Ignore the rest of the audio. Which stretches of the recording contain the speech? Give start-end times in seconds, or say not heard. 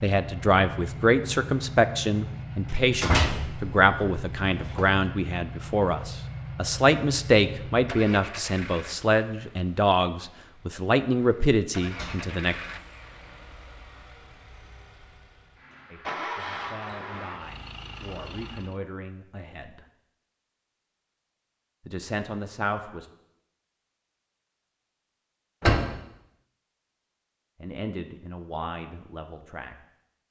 0.0-12.6, 15.9-19.9, 21.9-23.1, 27.6-29.8.